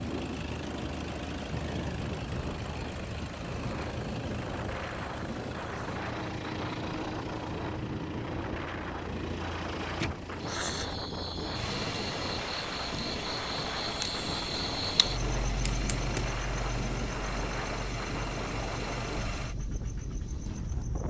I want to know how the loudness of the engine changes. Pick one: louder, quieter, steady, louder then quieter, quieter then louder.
steady.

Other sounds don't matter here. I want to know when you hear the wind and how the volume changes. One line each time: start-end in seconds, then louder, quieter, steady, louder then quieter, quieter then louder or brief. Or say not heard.
0.0-21.0 steady.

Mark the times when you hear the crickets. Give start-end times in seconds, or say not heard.
10.4-21.0.